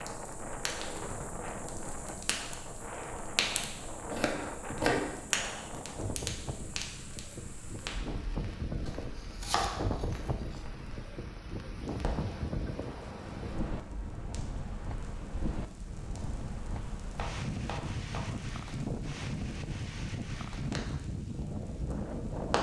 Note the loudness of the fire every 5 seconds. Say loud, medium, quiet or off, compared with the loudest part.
loud, loud, medium, medium, loud.